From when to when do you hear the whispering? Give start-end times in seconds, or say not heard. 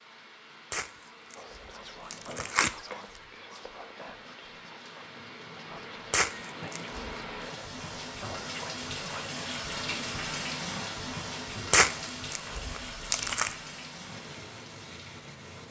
1.4-9.3.